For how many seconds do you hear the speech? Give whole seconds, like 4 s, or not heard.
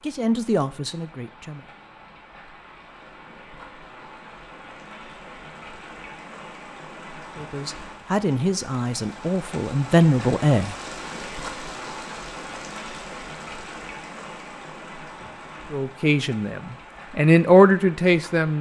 8 s.